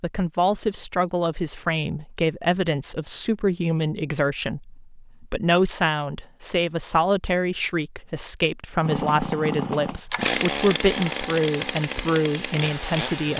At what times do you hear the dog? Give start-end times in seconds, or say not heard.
not heard.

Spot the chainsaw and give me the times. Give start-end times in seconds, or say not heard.
8.8-13.3.